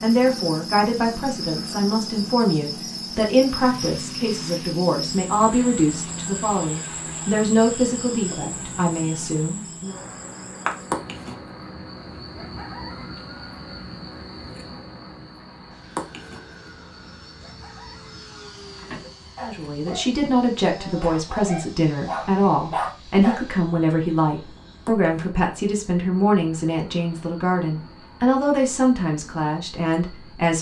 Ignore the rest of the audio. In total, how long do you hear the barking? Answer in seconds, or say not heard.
5 s.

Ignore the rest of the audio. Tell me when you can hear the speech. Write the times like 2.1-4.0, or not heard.
0.0-9.9, 19.4-30.5.